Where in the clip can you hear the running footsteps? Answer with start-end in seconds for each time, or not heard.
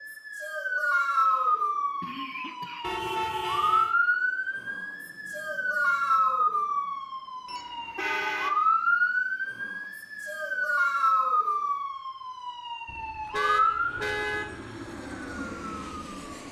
not heard.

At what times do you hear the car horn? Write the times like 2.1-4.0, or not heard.
2.8-4.0, 7.5-8.6, 12.8-14.6.